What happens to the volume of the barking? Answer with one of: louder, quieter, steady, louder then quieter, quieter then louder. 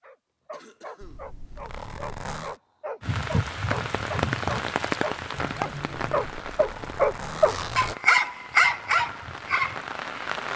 louder.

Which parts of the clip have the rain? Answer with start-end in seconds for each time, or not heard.
3.0-10.5.